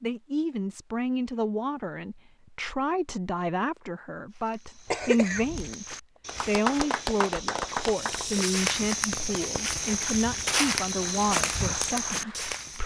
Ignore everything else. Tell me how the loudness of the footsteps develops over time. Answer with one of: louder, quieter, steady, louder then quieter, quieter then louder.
louder.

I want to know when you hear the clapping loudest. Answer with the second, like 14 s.
7 s.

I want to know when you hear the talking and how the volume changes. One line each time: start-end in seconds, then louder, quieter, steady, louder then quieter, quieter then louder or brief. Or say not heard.
0.0-12.8 steady.